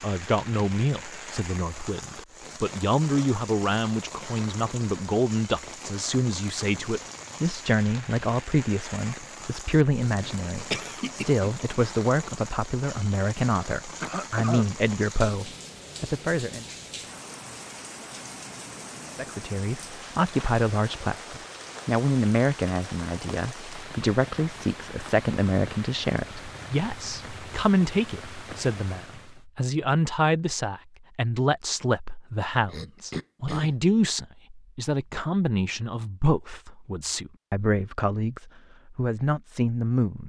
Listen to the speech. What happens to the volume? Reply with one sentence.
The volume of the speech stays about the same.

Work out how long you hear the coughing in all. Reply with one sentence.
The coughing can be heard for 3 seconds in total.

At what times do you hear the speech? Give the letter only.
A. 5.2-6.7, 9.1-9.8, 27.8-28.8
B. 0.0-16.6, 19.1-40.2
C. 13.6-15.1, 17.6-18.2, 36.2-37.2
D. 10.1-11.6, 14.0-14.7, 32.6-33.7
B.